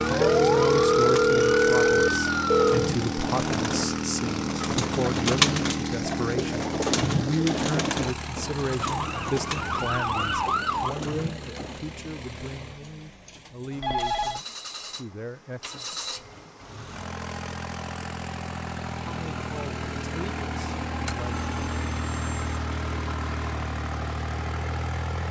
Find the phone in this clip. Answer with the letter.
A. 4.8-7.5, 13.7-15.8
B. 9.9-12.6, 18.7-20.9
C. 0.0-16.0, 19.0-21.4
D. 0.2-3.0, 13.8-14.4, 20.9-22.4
D.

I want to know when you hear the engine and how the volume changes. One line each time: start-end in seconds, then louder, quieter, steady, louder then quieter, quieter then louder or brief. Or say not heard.
0.0-25.2 quieter then louder.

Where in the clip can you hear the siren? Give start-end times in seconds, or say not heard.
0.0-2.7, 8.8-10.9.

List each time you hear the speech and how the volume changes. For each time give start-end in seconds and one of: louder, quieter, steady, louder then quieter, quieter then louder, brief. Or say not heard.
0.0-16.0 quieter
19.0-21.4 brief.